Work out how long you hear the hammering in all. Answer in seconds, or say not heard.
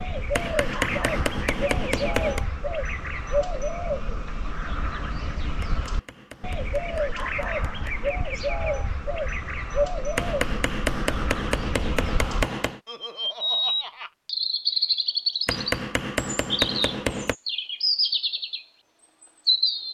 9 s.